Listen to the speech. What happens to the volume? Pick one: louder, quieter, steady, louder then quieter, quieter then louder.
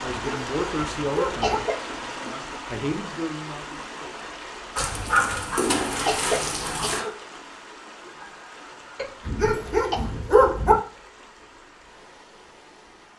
quieter then louder.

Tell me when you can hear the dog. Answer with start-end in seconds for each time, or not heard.
0.1-1.6, 4.8-7.0, 9.2-10.8.